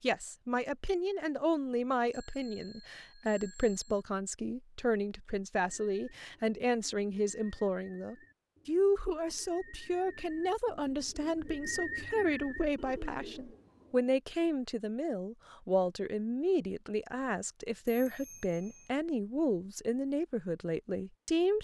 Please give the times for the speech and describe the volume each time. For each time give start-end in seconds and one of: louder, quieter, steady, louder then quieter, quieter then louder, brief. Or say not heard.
0.0-21.6 steady.